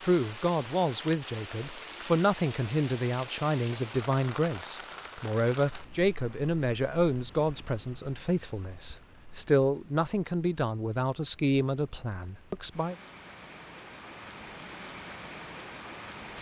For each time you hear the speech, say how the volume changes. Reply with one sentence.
The speech can be heard from 0.0 to 12.9 s, at a steady volume.